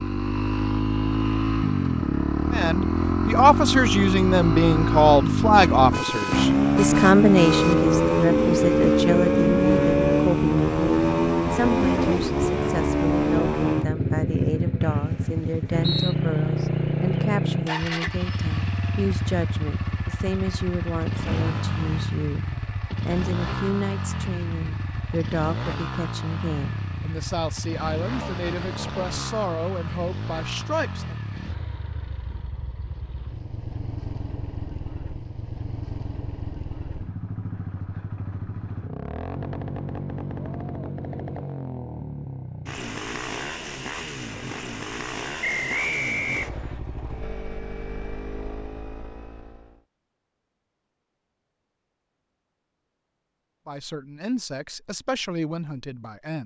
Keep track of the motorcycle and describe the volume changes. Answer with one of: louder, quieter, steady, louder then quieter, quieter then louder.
quieter.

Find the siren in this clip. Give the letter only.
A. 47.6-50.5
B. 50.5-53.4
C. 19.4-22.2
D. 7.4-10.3
D.